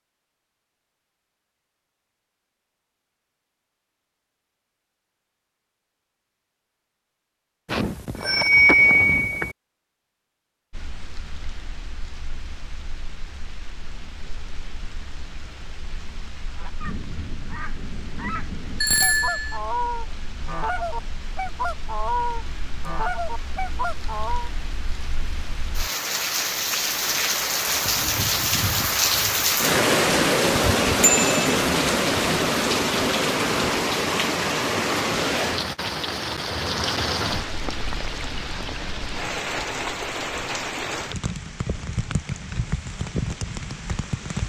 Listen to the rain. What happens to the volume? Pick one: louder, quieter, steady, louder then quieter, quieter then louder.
louder then quieter.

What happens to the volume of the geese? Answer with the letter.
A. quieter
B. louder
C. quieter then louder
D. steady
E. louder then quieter
B.